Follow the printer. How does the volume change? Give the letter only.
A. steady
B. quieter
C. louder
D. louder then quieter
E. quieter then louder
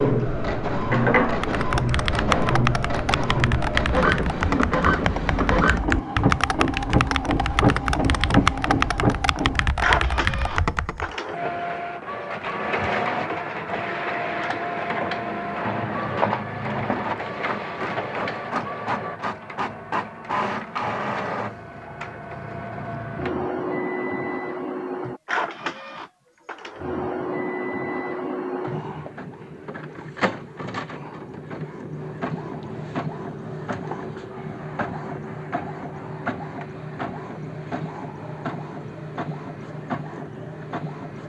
B.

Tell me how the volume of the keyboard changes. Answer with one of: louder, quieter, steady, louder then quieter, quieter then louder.
steady.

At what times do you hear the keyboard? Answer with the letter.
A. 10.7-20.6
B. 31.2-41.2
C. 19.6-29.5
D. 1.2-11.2
D.